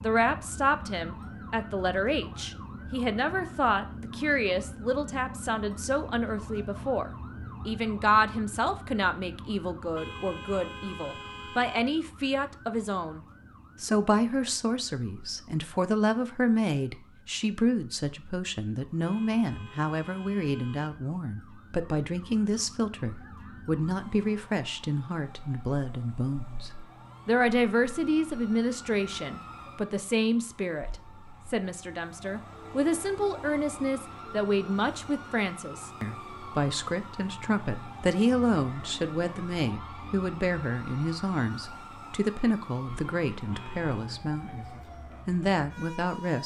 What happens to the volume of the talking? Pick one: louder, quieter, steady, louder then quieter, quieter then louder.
steady.